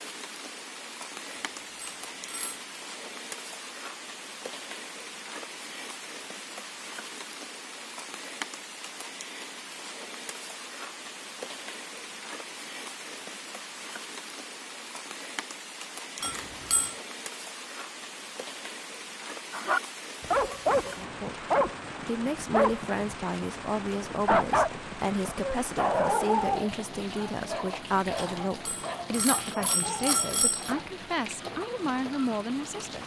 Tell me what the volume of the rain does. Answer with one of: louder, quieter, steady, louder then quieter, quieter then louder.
steady.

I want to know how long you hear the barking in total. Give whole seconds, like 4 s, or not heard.
11 s.